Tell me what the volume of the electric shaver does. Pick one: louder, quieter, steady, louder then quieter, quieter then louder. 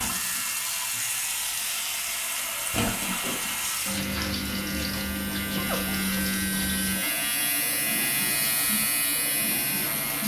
louder.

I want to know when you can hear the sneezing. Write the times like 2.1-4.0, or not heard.
2.4-3.5, 5.5-6.0.